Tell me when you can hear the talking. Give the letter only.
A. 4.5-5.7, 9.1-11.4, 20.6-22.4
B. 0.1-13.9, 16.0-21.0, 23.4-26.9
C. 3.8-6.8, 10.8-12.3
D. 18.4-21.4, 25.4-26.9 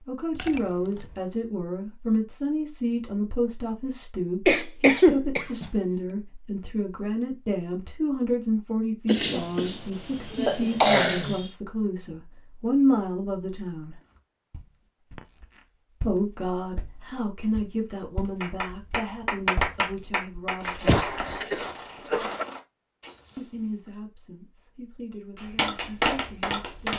B.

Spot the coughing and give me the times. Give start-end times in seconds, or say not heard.
4.5-5.7, 9.1-11.4, 20.6-22.4.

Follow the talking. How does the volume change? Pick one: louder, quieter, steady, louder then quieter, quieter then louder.
quieter.